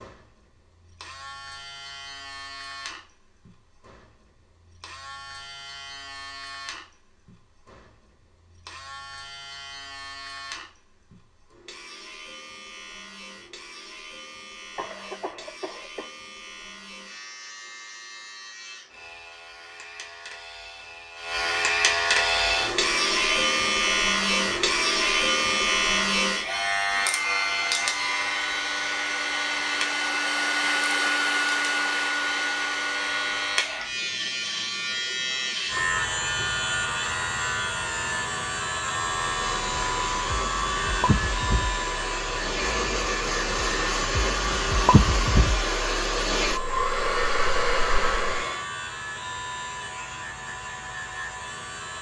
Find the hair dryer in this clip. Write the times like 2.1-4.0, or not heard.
22.1-34.0, 39.0-48.6.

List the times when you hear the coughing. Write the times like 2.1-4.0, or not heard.
14.8-16.1.